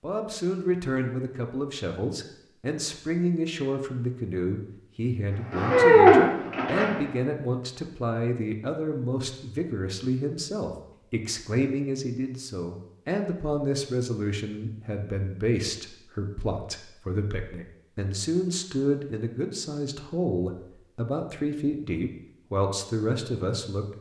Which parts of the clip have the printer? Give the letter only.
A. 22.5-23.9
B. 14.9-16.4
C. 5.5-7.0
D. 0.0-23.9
C.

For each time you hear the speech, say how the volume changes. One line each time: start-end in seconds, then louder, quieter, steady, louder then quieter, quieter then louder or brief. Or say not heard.
0.0-23.9 steady.